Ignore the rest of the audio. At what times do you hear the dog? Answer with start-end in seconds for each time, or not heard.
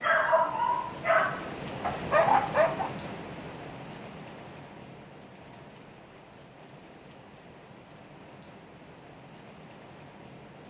0.0-2.9.